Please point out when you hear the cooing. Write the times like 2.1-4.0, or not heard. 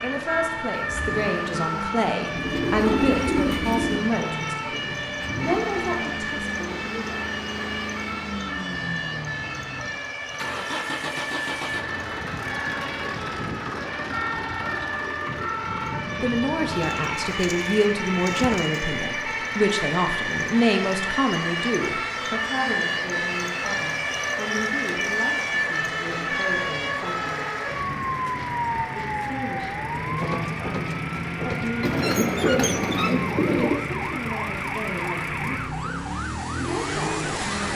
2.4-4.0, 16.8-18.9, 31.8-33.9.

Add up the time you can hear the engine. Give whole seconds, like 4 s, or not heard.
38 s.